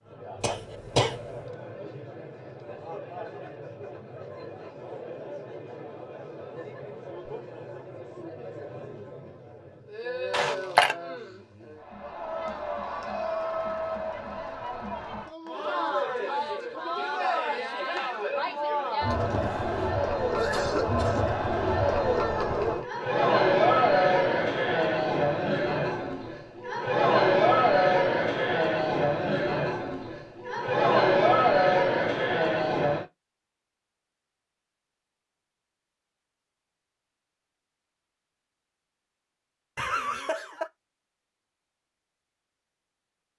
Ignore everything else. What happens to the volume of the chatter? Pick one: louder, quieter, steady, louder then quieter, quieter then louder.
louder.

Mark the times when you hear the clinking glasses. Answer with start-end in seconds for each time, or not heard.
10.3-10.9.